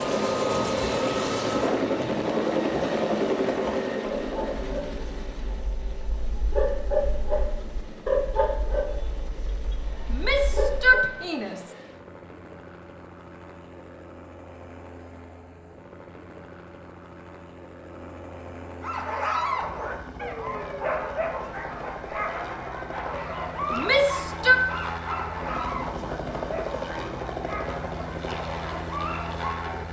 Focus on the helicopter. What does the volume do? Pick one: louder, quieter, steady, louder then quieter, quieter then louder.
quieter then louder.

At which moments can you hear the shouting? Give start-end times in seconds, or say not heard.
10.1-11.7, 23.7-24.6.